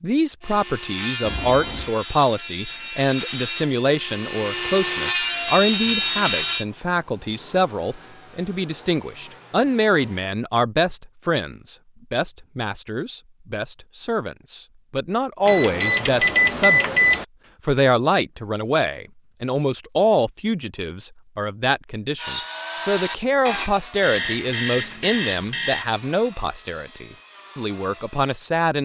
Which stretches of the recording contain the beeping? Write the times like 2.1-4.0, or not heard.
1.2-1.9, 15.4-17.2, 24.0-25.9.